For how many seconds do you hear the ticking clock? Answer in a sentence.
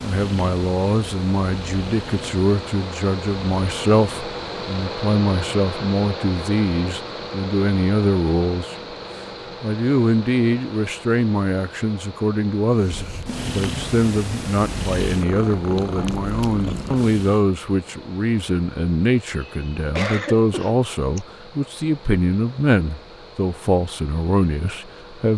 The ticking clock can't be heard in this clip.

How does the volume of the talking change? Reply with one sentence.
The loudness of the talking stays about the same.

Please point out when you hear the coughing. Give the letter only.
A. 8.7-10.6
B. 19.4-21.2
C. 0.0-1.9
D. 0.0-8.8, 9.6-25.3
B.